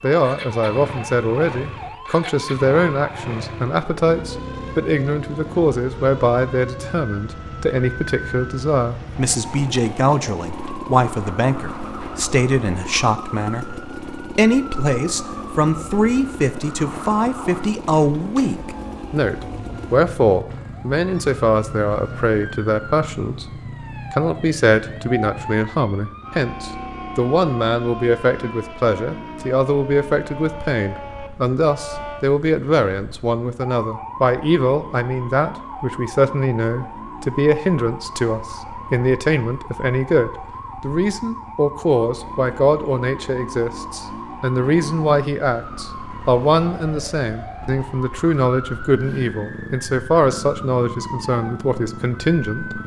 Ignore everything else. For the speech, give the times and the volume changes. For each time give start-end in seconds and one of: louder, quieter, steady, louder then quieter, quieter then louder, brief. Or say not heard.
0.0-52.8 steady.